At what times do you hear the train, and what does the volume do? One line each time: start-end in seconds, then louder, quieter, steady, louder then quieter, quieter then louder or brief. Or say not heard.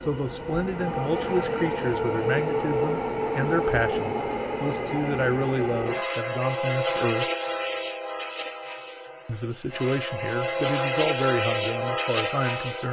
0.0-12.8 quieter then louder.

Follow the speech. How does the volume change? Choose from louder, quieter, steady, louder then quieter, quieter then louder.
steady.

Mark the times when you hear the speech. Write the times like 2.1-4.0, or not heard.
0.0-7.2, 9.2-12.8.